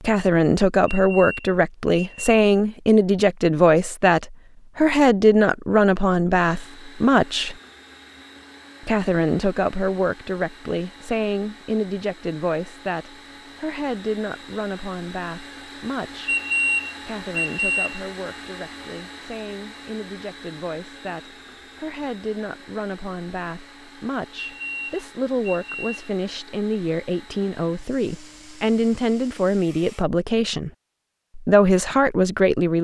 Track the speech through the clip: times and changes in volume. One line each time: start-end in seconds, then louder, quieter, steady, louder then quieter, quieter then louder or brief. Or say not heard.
0.0-7.5 steady
8.8-16.4 quieter
17.0-30.7 louder
31.4-32.7 brief.